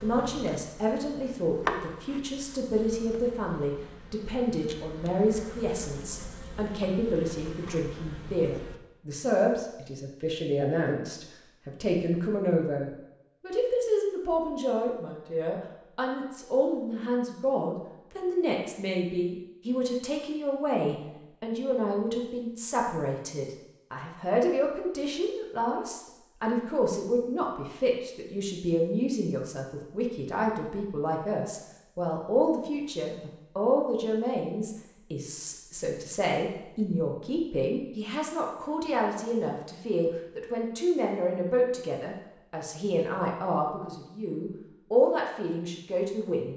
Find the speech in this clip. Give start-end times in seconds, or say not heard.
0.0-46.5.